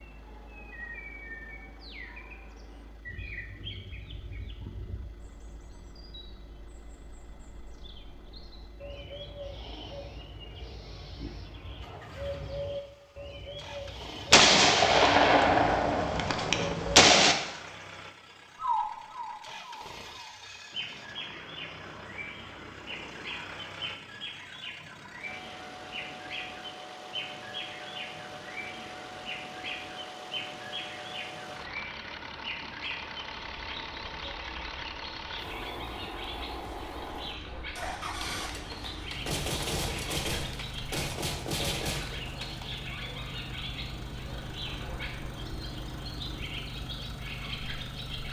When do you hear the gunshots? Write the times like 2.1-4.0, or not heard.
14.3-17.4, 38.4-42.7.